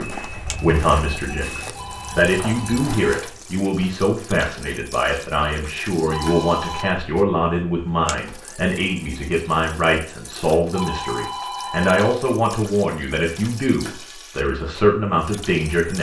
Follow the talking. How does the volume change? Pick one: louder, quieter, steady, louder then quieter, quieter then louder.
steady.